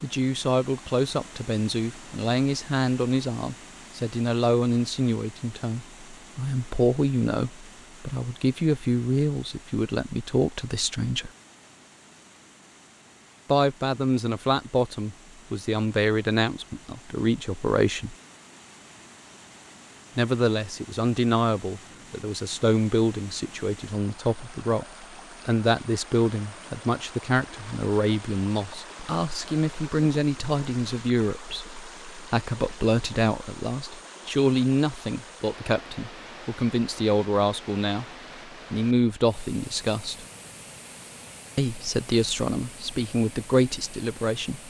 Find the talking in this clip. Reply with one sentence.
The talking can be heard from 0.0 to 11.3 s, from 13.4 to 18.1 s, from 20.1 to 38.0 s, from 38.7 to 40.2 s and from 41.5 to 44.6 s.